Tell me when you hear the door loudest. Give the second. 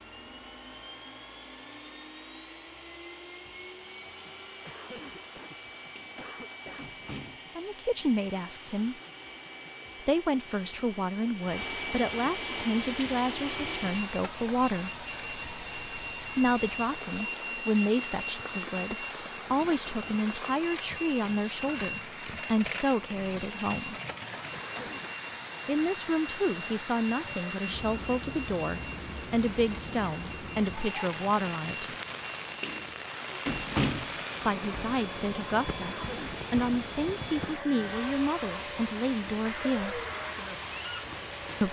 34 s.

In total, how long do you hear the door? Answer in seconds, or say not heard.
4 s.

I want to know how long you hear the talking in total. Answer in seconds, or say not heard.
26 s.